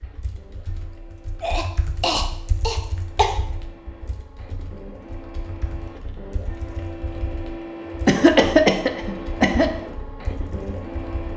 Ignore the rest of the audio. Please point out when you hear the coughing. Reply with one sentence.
You can hear the coughing from 1.4 to 3.4 s and from 8.1 to 9.7 s.